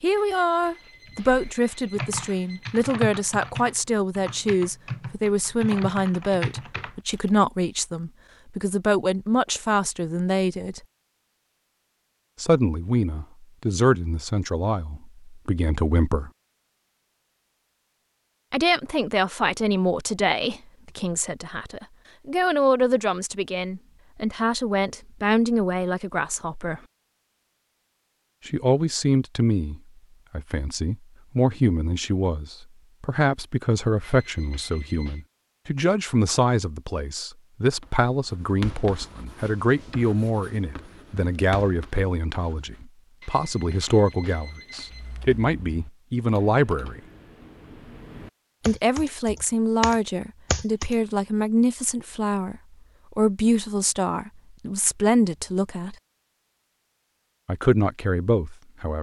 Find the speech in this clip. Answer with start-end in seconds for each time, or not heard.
0.0-10.8, 12.4-16.3, 18.5-26.8, 28.4-47.0, 48.6-56.0, 57.5-58.9.